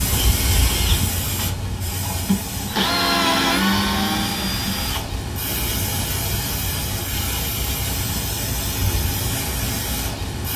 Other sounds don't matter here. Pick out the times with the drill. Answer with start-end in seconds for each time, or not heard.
0.0-5.2.